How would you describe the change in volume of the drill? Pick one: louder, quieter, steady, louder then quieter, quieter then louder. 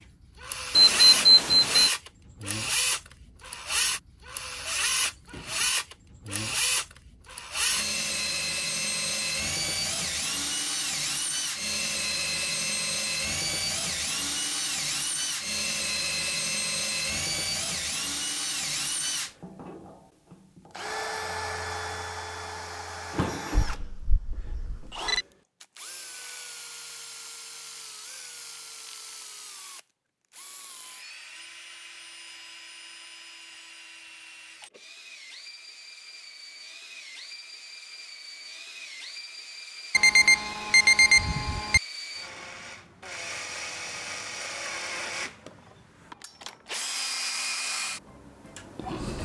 quieter then louder.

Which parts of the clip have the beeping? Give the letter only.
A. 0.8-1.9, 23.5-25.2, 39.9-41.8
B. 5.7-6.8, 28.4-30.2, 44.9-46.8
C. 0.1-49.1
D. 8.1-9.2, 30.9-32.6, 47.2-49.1
A.